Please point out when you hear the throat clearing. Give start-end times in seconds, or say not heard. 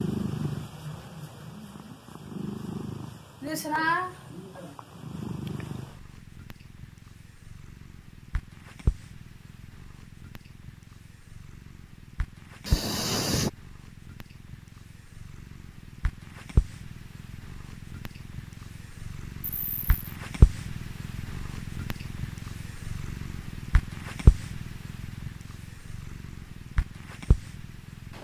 3.4-4.8, 12.7-13.5, 19.4-20.0.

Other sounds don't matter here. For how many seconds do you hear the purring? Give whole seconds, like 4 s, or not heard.
28 s.